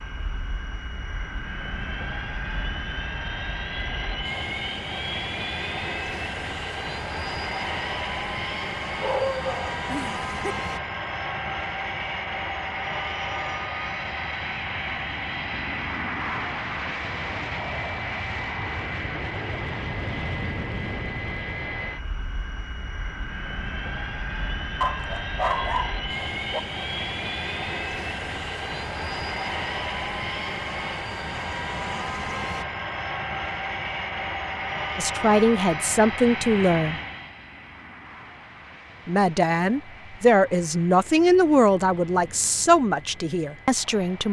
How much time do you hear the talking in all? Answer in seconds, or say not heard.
7 s.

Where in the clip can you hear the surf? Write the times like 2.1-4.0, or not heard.
not heard.